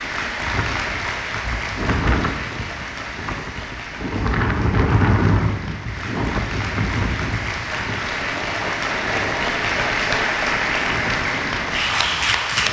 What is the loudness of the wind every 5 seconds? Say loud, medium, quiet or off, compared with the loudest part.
loud, loud, medium.